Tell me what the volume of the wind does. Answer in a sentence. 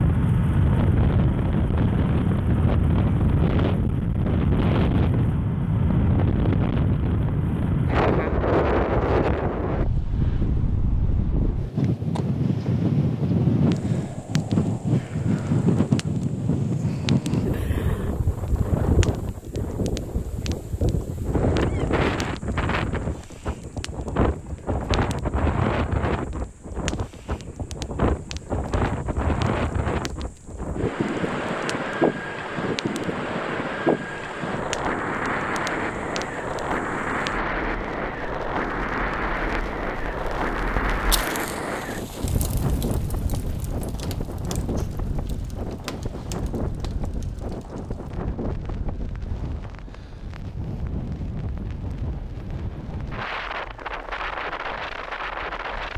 The volume of the wind goes down.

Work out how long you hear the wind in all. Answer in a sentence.
The wind can be heard for 56 seconds in total.